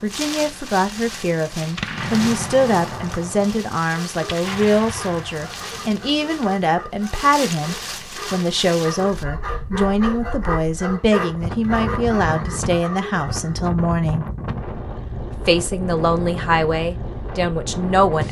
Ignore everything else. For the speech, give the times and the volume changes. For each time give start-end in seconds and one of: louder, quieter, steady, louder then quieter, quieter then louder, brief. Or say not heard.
0.0-14.2 steady
15.4-18.2 brief.